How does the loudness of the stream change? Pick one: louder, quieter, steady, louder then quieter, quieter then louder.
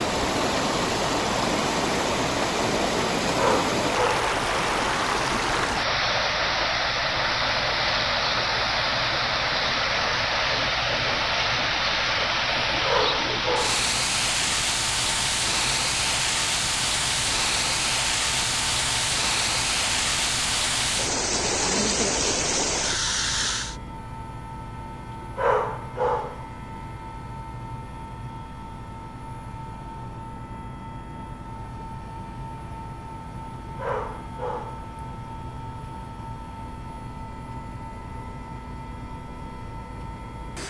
steady.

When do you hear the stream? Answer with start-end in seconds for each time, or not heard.
0.0-23.8.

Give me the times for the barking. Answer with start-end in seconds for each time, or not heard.
3.2-4.2, 12.7-13.8, 25.2-26.4, 33.6-34.9.